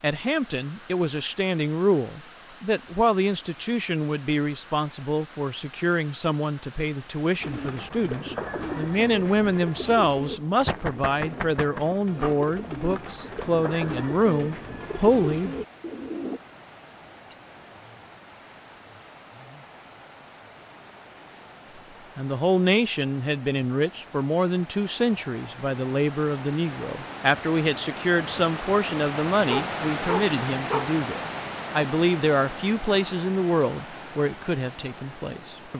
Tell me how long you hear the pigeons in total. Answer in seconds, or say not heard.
9 s.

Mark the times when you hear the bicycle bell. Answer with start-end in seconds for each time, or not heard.
not heard.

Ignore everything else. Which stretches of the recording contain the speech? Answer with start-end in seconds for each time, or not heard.
0.0-15.6, 22.1-35.7.